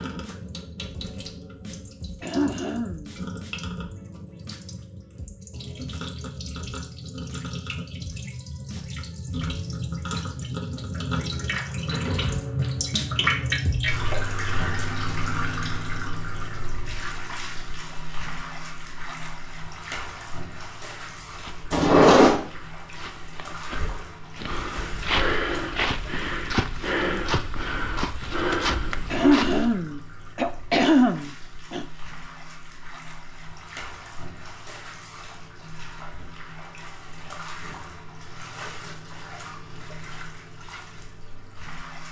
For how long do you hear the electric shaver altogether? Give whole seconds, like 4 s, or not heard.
not heard.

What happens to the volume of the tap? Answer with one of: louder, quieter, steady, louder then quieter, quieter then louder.
louder then quieter.